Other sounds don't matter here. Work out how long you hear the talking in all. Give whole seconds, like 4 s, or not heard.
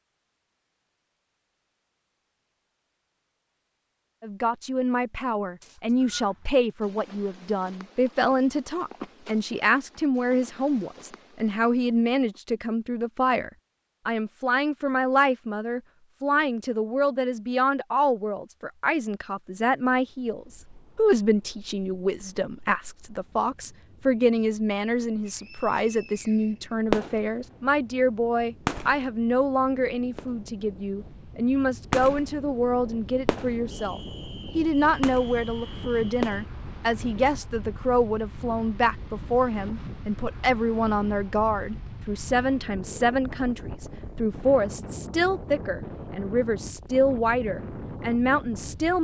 45 s.